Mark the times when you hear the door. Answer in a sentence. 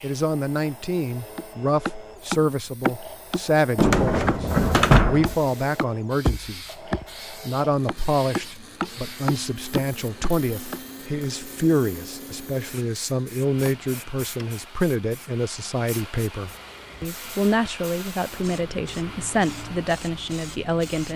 You can hear the door from 3.8 to 5.3 s and from 13.6 to 14.5 s.